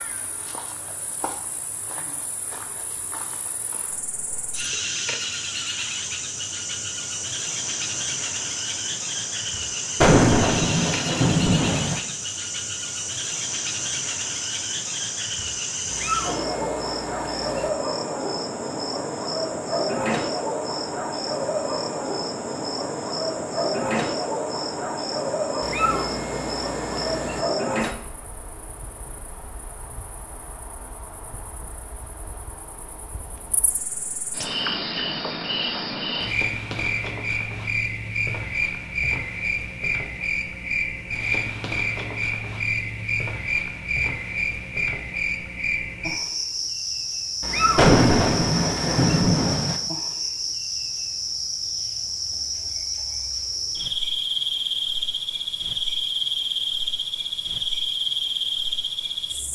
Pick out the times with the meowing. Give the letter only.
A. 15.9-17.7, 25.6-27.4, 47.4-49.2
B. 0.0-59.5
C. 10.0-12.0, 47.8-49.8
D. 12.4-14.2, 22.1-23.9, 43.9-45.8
A.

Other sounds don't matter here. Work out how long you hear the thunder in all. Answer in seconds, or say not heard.
4 s.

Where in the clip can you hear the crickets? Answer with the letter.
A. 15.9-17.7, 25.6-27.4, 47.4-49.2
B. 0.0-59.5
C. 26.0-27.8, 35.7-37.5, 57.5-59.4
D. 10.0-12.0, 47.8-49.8
B.